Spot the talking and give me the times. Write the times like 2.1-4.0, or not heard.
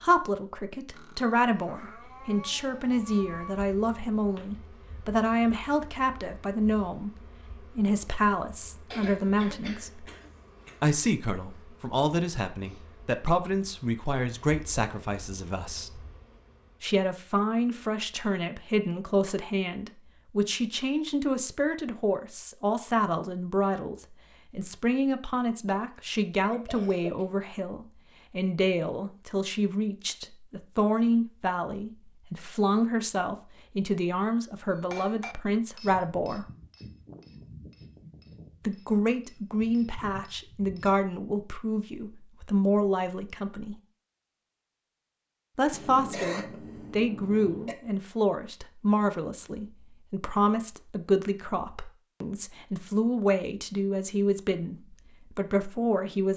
0.0-10.1, 10.8-16.1, 16.8-36.5, 38.6-43.8, 45.5-56.3.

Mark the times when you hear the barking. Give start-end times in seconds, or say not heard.
not heard.